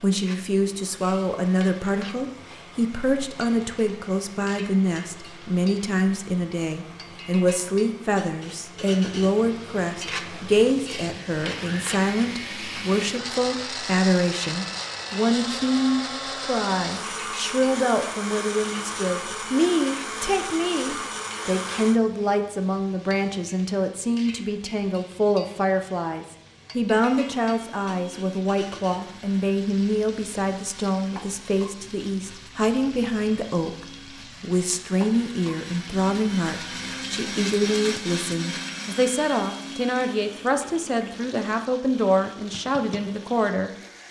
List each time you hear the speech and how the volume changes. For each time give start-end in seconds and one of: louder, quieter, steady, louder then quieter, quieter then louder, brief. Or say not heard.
0.0-43.7 steady.